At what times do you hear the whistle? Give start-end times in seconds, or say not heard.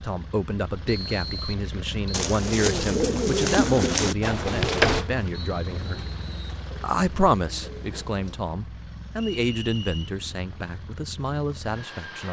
0.8-2.2, 5.5-6.6, 9.2-10.1.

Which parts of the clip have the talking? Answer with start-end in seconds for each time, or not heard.
0.0-6.0, 6.8-12.2.